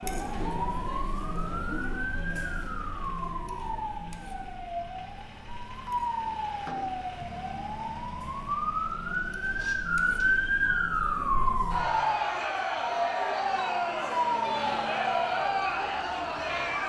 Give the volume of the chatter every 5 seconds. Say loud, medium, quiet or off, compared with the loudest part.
medium, quiet, loud, loud.